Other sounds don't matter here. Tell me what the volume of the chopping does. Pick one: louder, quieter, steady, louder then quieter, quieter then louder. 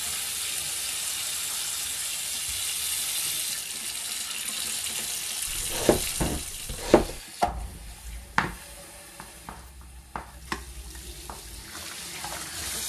quieter.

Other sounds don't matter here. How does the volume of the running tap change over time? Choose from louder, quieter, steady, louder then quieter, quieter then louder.
quieter then louder.